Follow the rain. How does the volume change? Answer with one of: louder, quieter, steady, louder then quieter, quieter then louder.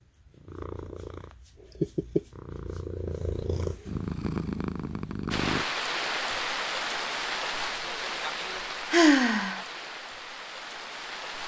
quieter.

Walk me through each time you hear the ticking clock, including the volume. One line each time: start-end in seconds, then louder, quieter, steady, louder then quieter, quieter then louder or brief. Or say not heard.
not heard.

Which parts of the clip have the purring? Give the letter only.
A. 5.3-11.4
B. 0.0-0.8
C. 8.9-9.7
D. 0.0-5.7
D.